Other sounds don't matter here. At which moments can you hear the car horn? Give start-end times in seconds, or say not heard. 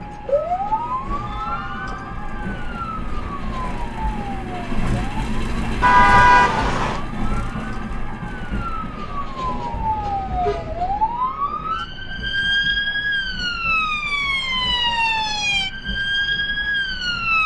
5.8-7.0, 9.7-10.8.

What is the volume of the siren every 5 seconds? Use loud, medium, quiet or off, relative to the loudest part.
medium, medium, loud, loud.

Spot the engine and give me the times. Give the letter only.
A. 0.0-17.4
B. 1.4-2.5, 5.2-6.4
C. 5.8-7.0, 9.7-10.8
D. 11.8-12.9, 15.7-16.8
A.